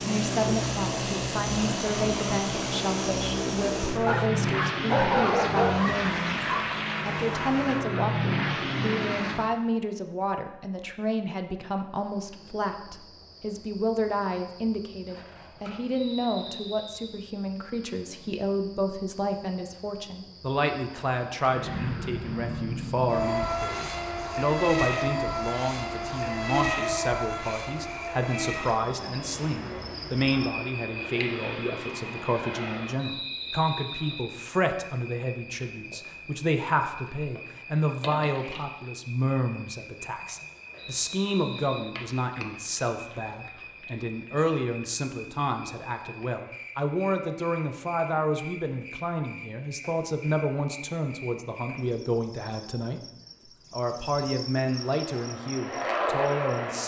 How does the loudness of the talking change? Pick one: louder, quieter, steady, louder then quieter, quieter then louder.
steady.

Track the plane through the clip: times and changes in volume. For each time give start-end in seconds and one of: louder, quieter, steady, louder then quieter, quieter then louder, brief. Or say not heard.
0.0-9.5 steady
21.4-33.0 quieter
54.6-56.8 brief.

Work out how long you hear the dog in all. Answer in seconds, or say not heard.
3 s.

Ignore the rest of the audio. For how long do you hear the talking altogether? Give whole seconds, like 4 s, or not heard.
57 s.